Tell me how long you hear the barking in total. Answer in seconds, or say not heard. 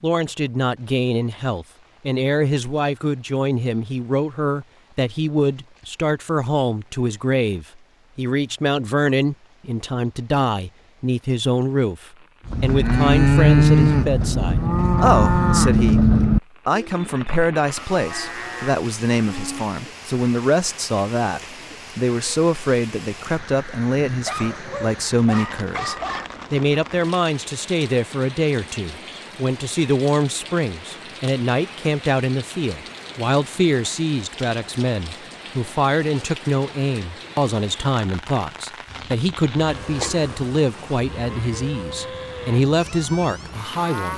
2 s.